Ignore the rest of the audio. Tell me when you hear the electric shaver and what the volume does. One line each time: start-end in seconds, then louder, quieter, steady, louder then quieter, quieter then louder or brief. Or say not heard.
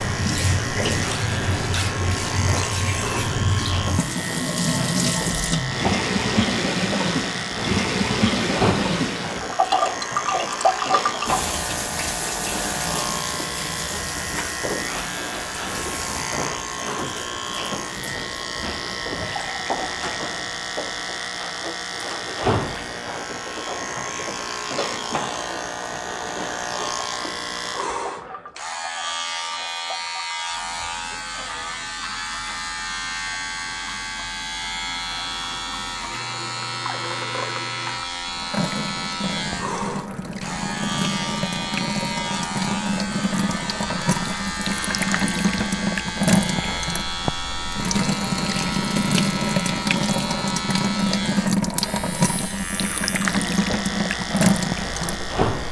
0.0-55.6 steady.